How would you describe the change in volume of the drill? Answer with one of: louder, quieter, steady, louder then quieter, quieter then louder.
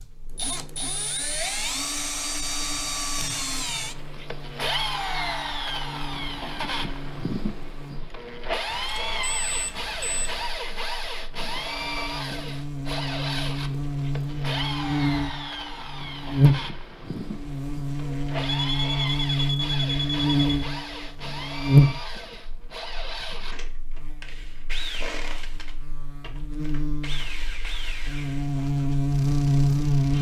quieter.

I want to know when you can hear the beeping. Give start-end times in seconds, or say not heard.
8.7-10.6, 18.6-20.4.